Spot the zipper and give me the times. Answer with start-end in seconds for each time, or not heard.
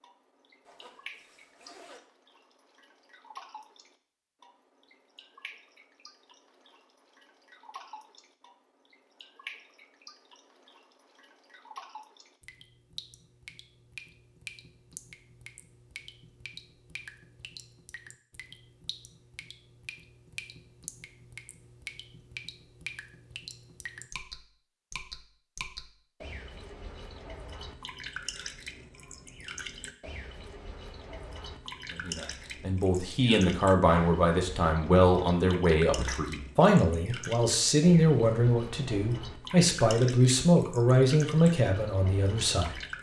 0.7-2.0.